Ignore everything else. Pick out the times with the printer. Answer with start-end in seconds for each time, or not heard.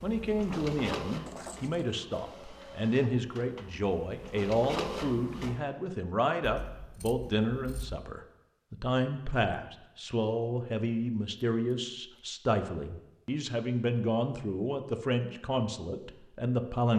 0.0-5.6.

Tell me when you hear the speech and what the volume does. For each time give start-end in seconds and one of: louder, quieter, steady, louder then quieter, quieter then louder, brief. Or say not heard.
0.0-16.9 steady.